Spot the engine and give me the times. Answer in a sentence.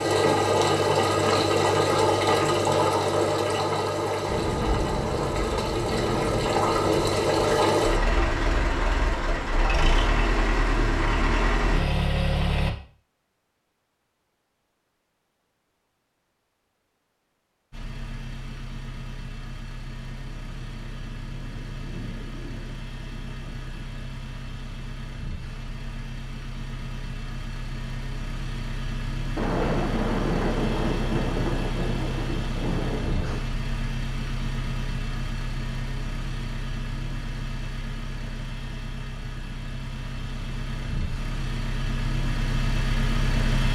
The engine can be heard from 0.0 to 12.7 s and from 17.7 to 43.6 s.